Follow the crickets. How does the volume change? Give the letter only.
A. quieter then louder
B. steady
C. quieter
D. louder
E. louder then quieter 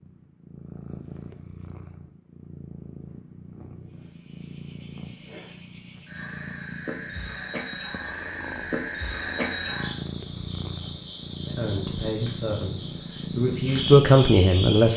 D.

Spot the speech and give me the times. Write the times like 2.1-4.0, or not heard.
11.4-14.9.